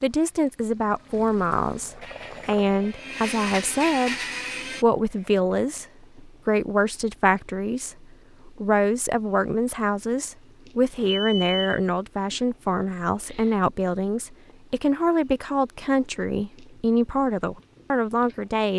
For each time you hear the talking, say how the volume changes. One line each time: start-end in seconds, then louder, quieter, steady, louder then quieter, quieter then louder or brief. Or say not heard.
0.0-4.2 quieter then louder
4.8-18.7 steady.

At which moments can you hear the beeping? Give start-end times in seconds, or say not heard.
10.9-11.8.